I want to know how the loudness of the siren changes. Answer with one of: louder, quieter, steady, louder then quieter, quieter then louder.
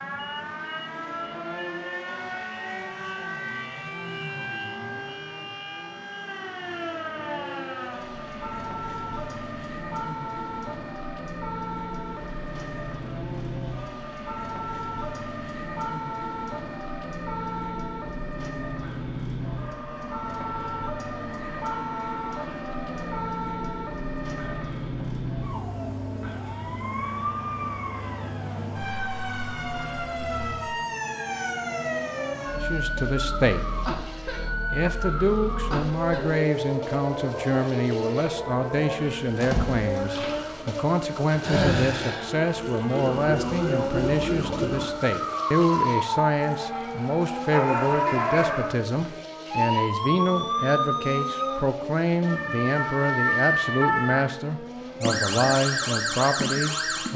louder.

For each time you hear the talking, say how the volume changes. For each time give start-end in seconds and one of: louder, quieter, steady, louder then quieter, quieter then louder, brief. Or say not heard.
32.5-33.6 brief
34.7-57.1 steady.